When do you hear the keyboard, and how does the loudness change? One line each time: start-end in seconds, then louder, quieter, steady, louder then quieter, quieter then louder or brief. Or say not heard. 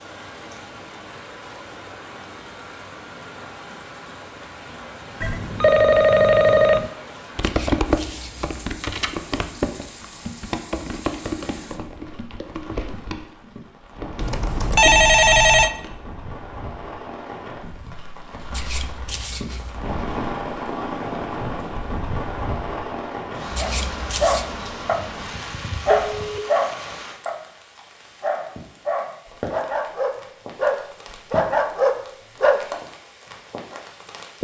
7.3-15.9 quieter.